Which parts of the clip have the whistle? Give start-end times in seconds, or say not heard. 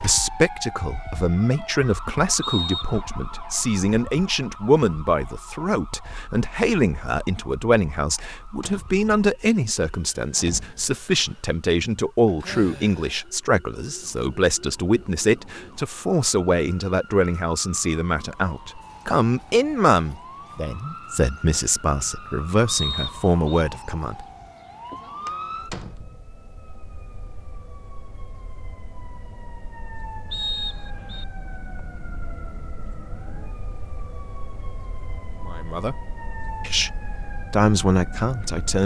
2.4-3.0, 22.6-23.6, 30.3-31.2.